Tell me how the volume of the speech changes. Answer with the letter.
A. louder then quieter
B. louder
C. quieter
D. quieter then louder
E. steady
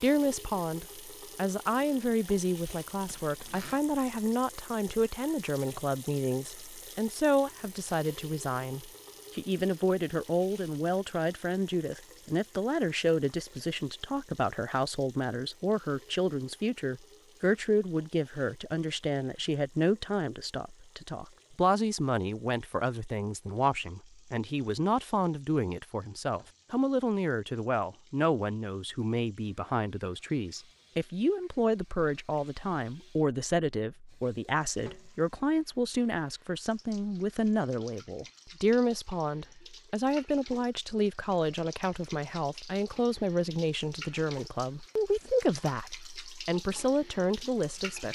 E.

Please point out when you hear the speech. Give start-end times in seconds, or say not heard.
0.0-48.1.